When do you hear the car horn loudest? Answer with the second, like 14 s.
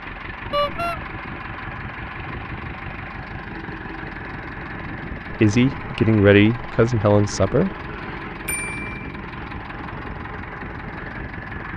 1 s.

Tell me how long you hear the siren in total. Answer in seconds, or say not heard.
not heard.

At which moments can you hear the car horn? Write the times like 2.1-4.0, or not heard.
0.5-1.0, 8.4-9.1.